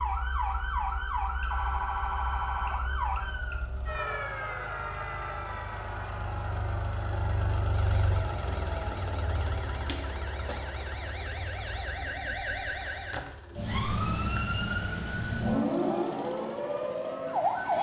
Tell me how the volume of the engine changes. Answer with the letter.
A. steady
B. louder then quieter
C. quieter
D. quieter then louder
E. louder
B.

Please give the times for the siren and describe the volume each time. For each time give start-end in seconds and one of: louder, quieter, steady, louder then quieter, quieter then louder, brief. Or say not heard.
0.0-17.7 quieter then louder.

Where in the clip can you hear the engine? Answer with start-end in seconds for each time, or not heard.
1.4-17.7.